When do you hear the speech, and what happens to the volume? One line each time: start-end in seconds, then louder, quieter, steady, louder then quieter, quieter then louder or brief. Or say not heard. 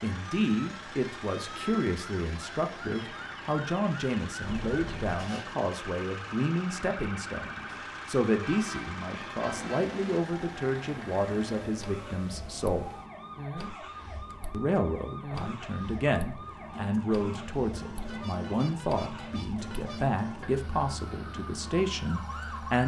0.0-12.9 steady
14.5-22.8 steady.